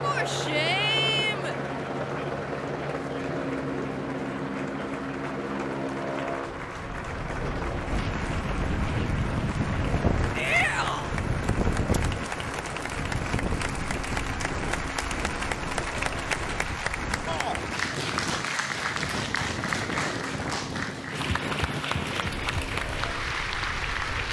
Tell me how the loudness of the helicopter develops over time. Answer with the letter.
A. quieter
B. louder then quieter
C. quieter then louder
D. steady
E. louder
A.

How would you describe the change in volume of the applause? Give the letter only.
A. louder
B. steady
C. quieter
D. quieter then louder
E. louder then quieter
A.